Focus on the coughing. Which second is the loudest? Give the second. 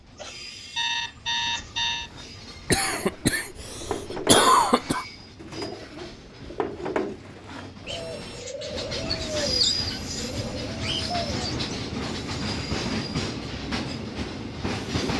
4 s.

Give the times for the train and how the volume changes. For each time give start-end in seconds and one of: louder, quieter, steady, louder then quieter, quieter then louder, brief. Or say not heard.
0.0-15.1 louder.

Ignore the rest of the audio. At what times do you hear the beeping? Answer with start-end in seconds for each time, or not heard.
0.1-2.1, 7.8-8.5.